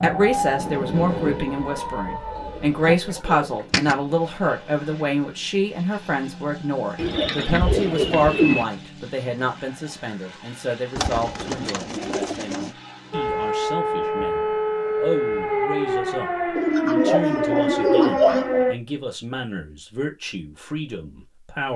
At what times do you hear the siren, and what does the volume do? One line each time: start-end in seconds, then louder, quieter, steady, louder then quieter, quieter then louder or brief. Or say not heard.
0.0-3.0 brief
13.1-18.8 steady.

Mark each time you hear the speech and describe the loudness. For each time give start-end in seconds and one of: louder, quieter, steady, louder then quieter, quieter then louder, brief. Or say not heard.
0.0-21.7 quieter.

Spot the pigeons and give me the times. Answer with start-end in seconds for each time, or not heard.
2.3-4.0, 7.0-8.7, 10.9-12.8, 16.6-18.6.